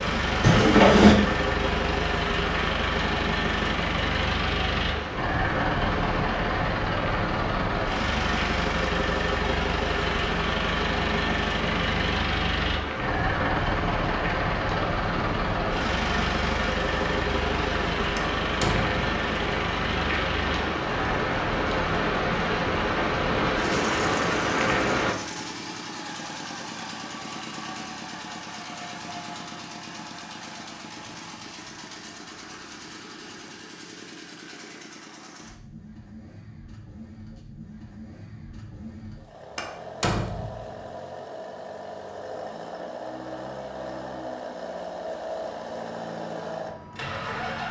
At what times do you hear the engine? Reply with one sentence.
The engine can be heard from 0.0 to 47.6 s.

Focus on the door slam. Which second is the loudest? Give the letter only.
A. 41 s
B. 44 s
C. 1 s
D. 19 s
C.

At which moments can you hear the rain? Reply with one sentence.
The rain can be heard from 0.0 to 25.1 s.